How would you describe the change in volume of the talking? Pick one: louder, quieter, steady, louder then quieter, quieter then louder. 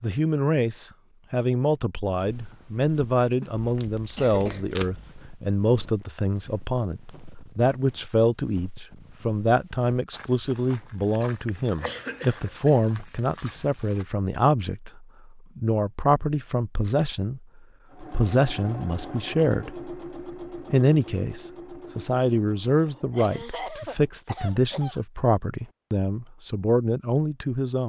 steady.